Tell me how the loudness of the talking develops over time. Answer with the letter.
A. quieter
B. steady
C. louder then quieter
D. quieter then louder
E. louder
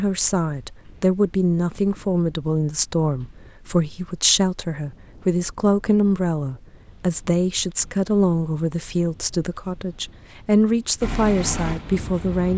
B.